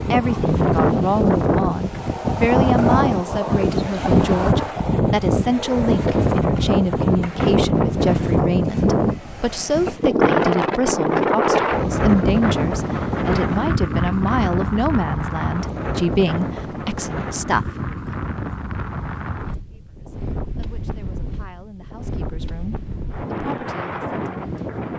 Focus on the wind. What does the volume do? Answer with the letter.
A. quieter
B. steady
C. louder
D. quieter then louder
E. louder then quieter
A.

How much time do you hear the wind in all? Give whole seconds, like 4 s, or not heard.
25 s.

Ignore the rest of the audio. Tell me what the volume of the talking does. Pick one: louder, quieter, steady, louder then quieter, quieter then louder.
quieter.